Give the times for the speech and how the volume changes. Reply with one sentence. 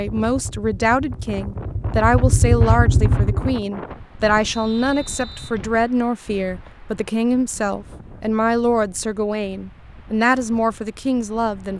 You can hear the speech from 0.0 to 11.7 s, at a steady volume.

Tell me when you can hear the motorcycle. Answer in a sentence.
The motorcycle can be heard from 0.1 to 3.6 s.